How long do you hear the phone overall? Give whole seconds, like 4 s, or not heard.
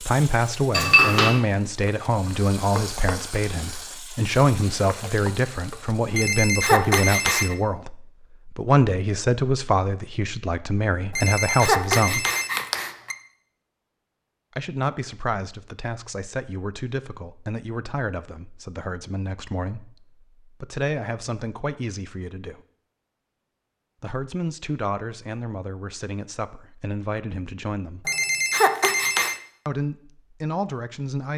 5 s.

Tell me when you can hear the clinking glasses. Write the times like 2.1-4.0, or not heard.
0.7-1.4.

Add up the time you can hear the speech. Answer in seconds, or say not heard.
26 s.